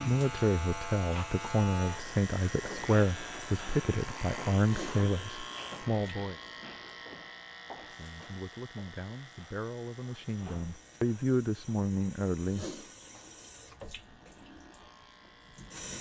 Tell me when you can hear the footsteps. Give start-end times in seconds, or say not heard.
not heard.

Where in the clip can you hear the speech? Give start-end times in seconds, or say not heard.
0.1-6.3, 7.9-12.7.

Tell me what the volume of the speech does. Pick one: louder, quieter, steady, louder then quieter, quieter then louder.
quieter then louder.